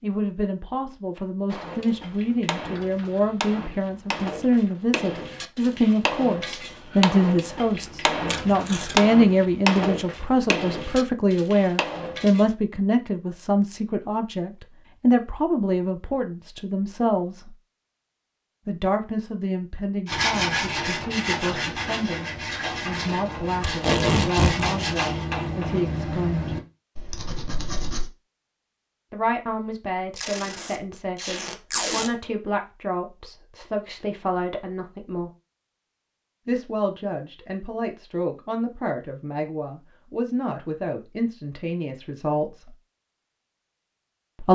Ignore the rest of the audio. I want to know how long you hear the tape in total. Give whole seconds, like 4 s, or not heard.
4 s.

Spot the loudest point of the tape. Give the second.
24 s.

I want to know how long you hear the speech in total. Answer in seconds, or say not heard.
38 s.